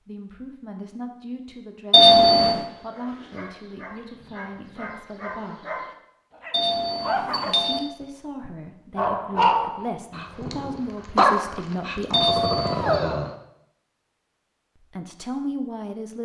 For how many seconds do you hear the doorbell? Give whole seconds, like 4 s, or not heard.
3 s.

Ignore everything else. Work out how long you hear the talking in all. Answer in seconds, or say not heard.
12 s.